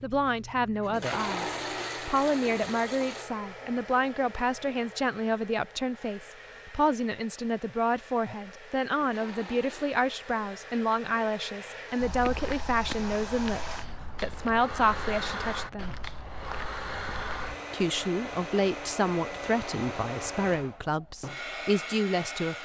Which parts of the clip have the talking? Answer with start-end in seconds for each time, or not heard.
0.0-15.9, 17.7-22.6.